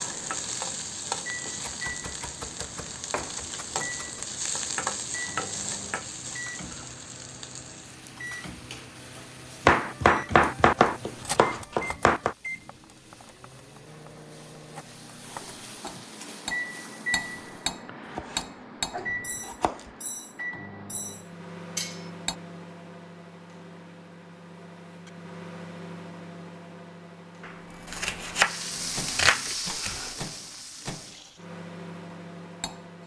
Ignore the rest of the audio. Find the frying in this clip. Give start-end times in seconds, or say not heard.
0.0-17.8, 28.3-31.4.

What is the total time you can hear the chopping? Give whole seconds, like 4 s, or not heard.
10 s.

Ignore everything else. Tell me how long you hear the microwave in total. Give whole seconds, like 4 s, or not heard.
33 s.